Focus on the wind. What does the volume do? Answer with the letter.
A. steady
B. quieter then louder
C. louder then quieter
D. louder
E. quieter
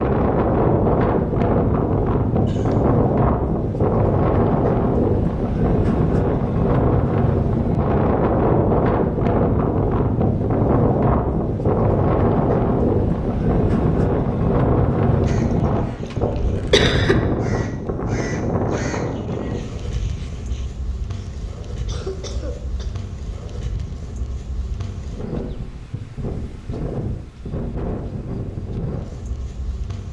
E.